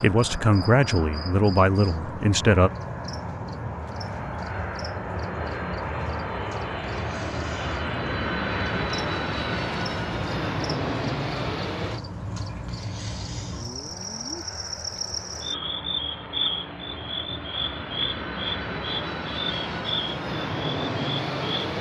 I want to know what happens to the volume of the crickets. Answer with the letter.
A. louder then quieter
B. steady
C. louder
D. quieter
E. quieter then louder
C.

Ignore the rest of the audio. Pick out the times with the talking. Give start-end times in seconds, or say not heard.
0.0-2.7.